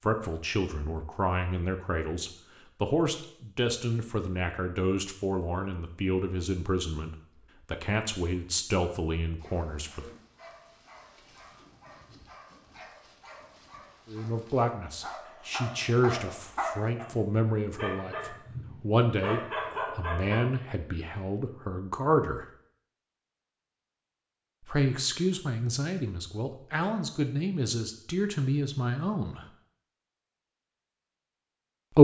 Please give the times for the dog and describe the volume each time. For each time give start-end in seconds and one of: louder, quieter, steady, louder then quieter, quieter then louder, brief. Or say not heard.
9.3-20.6 louder.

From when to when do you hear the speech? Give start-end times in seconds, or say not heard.
0.0-10.1, 14.1-22.4, 24.6-29.4.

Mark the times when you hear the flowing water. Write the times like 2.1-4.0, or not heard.
not heard.